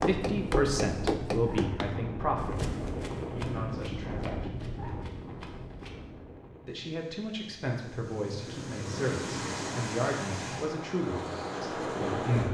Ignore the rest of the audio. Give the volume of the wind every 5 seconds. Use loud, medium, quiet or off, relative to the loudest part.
loud, medium, loud.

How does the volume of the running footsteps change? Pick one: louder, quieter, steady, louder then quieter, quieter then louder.
quieter.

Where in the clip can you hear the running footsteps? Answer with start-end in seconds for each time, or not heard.
0.0-6.0.